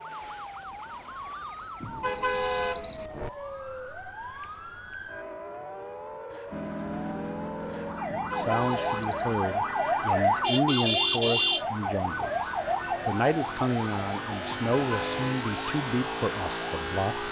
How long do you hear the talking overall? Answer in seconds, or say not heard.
9 s.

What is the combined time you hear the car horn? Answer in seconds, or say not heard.
4 s.